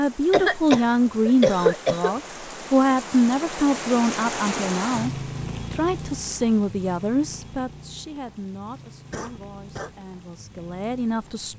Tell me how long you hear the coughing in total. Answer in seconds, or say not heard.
3 s.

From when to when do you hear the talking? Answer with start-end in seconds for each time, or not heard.
0.0-5.1, 5.7-11.5.